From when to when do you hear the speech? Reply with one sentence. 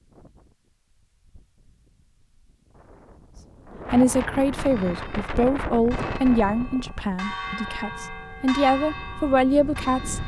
You can hear the speech from 3.9 to 10.2 s.